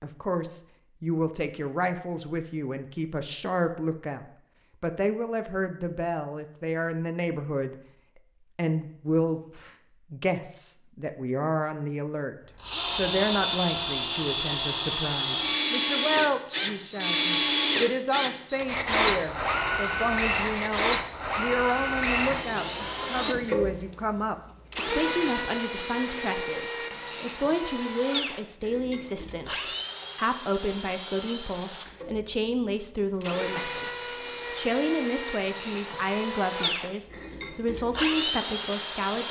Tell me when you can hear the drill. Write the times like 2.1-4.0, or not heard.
12.6-39.2.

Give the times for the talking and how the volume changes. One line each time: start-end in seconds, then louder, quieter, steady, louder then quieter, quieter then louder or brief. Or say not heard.
0.0-39.2 steady.